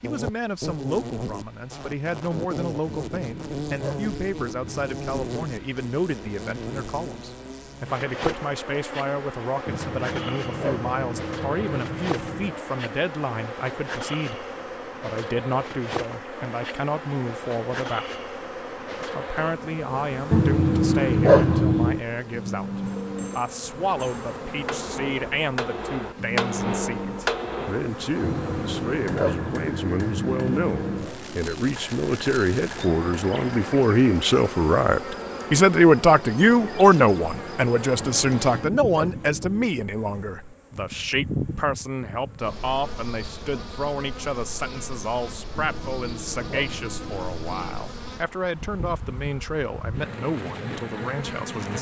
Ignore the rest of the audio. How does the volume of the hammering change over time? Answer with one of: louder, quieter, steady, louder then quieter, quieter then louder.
louder then quieter.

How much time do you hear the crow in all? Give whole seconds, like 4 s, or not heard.
not heard.